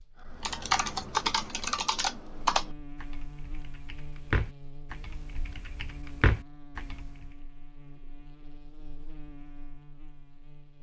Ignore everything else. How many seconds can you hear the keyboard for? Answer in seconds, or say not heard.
7 s.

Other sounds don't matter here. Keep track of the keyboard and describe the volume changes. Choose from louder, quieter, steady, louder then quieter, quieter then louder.
quieter then louder.